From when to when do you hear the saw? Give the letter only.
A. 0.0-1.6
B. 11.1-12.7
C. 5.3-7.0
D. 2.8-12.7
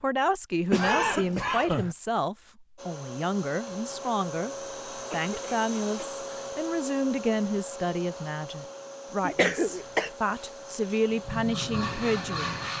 B.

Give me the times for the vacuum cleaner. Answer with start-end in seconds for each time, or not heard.
2.8-12.7.